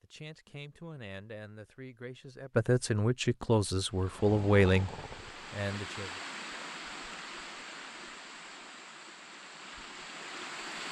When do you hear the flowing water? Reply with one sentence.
The flowing water can be heard from 3.8 to 10.8 s.